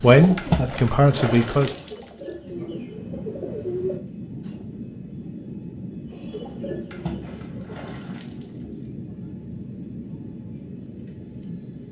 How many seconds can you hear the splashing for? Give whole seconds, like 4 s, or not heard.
4 s.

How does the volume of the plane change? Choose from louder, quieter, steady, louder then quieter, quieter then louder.
steady.